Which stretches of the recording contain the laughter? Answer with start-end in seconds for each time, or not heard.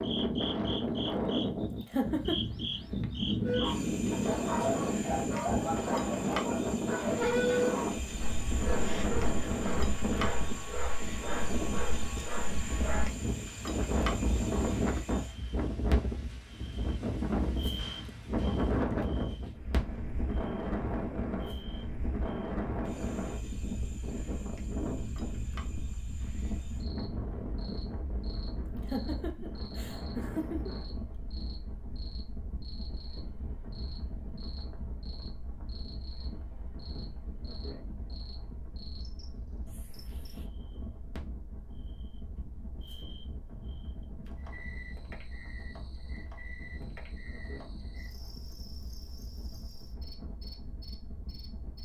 1.8-2.4, 28.7-30.8.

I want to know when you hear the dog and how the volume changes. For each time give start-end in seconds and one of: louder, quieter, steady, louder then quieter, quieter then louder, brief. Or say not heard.
3.4-13.1 quieter.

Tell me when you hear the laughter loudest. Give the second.
2 s.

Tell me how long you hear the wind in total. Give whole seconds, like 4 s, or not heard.
52 s.